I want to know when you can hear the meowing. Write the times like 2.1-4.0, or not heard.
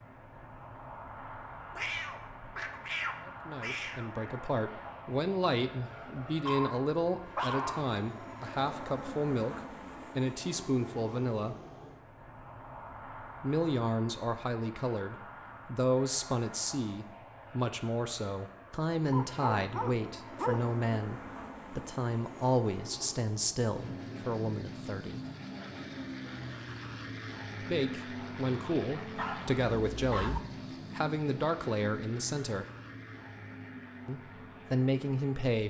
1.7-4.1.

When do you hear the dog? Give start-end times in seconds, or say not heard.
6.5-8.0, 19.1-20.8, 29.1-30.4.